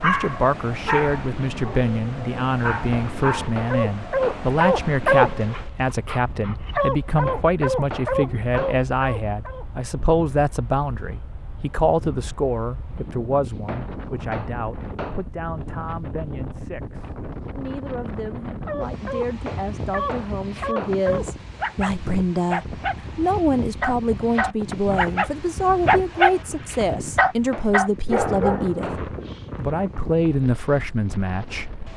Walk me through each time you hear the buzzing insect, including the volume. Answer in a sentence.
The buzzing insect can't be heard in this clip.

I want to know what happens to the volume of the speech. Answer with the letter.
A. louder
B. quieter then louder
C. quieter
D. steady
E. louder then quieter
B.